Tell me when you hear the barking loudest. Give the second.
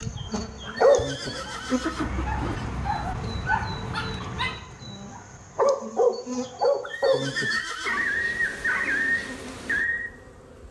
1 s.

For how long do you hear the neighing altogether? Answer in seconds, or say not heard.
3 s.